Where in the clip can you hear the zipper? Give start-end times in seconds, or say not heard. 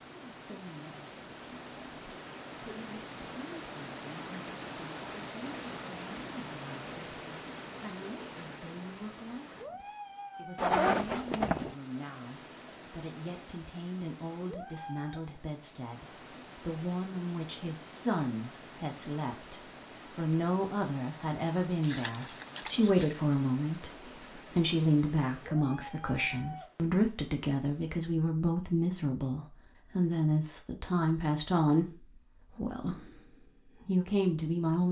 10.6-11.8, 21.8-23.1.